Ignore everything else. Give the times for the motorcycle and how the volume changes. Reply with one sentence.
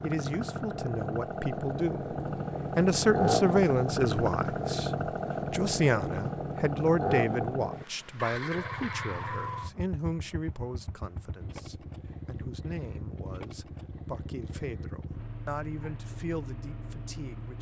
The motorcycle can be heard from 0.0 to 17.5 s, getting quieter.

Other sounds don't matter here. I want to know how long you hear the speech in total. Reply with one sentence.
The speech can be heard for 17 seconds in total.